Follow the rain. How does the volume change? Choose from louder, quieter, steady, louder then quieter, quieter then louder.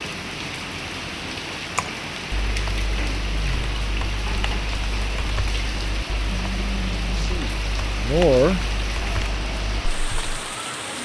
steady.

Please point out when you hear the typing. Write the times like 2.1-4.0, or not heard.
1.8-10.4.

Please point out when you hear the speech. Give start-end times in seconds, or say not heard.
7.0-8.6.